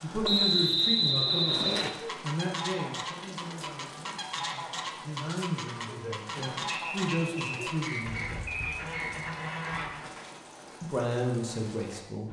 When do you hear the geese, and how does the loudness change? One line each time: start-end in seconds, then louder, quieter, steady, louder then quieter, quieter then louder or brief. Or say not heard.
1.9-10.1 steady.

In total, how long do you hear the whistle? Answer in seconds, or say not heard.
4 s.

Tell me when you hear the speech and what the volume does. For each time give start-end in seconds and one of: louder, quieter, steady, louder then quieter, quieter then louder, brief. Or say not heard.
0.0-8.4 quieter then louder
10.8-12.2 brief.